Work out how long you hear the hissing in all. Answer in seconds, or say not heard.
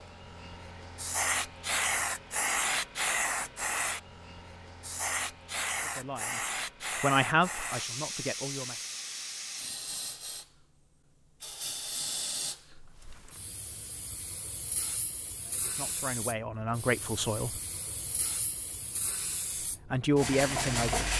21 s.